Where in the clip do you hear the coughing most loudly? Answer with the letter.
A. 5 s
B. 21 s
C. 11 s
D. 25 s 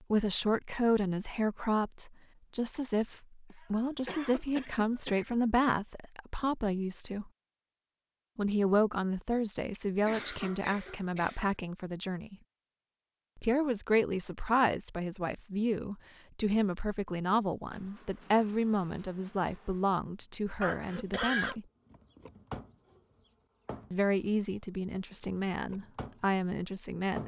B.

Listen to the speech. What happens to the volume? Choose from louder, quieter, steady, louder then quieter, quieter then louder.
steady.